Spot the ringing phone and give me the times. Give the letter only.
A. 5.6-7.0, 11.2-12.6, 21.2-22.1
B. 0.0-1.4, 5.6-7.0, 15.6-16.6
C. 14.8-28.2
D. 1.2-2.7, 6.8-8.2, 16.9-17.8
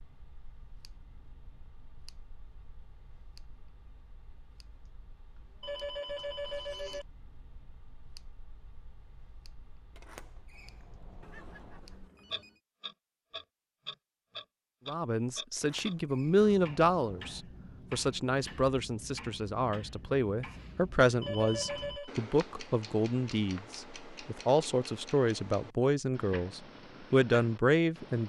A.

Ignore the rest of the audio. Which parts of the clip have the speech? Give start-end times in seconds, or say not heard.
14.8-28.2.